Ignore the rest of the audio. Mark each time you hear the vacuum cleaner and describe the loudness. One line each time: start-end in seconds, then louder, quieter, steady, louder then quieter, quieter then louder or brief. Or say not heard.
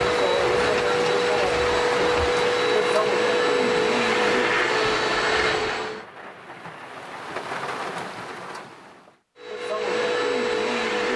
0.0-6.0 steady
9.3-11.1 brief.